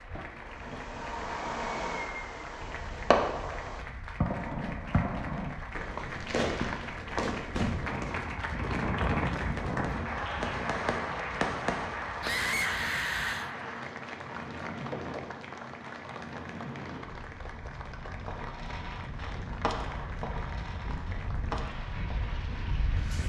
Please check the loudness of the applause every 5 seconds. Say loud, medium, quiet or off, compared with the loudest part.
medium, loud, loud, medium, medium.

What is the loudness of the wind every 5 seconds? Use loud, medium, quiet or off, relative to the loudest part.
quiet, loud, medium, medium, medium.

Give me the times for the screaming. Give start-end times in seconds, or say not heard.
12.2-13.5.